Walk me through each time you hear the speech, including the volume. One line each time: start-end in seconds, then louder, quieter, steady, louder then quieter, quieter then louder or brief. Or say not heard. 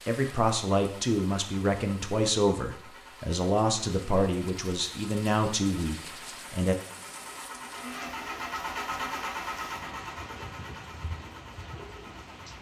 0.1-6.8 steady.